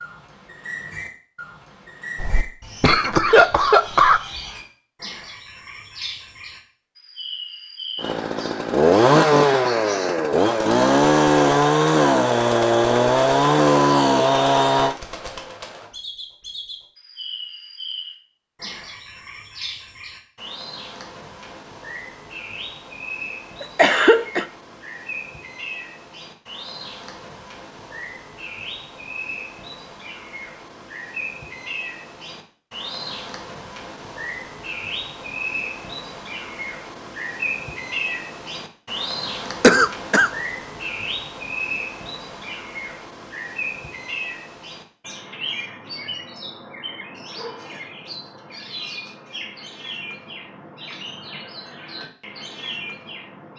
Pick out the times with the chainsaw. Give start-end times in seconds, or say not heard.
8.0-14.9.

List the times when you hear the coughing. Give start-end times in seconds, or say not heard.
2.2-4.2, 23.6-24.4, 39.6-40.3.